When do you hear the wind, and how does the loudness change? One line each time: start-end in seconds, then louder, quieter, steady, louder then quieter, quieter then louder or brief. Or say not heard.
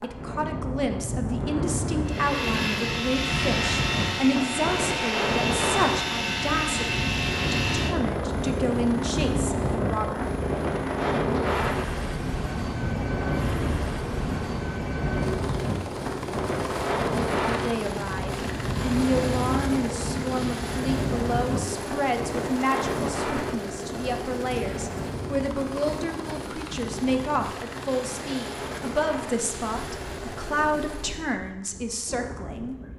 0.0-32.9 quieter.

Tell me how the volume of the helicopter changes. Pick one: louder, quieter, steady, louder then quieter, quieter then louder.
quieter.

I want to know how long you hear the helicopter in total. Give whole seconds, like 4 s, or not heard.
29 s.